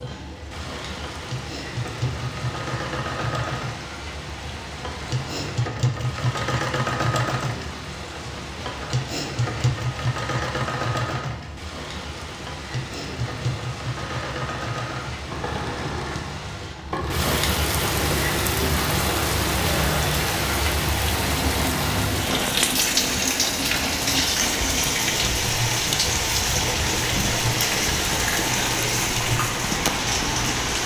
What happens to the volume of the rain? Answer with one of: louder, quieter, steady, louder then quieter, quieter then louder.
louder.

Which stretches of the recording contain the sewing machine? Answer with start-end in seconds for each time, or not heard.
0.0-30.8.